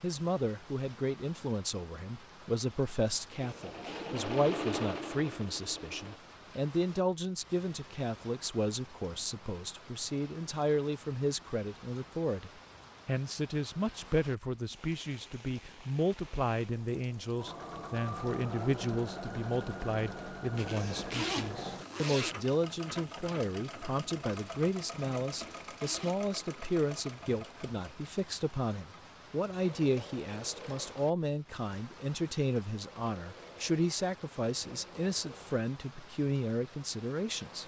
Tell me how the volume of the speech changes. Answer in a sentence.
The volume of the speech stays about the same.